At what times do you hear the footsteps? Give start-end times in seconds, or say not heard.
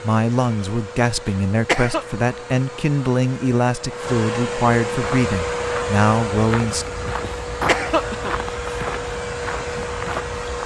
5.0-10.6.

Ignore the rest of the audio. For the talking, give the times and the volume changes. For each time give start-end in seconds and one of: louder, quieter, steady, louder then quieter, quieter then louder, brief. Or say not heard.
0.0-6.9 steady.